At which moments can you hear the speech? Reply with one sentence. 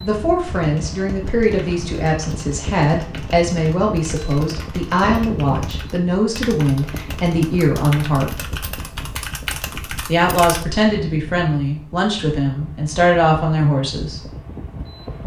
The speech can be heard from 0.0 to 8.5 s and from 10.1 to 14.2 s.